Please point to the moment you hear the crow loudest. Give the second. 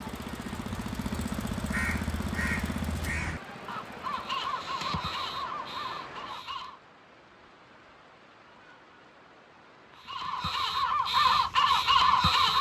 12 s.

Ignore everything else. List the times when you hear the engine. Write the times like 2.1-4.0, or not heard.
0.0-4.4.